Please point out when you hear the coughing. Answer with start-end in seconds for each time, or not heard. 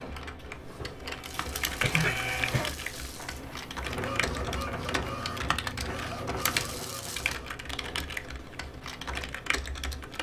1.8-2.7.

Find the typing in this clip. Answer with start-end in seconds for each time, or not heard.
0.0-10.1.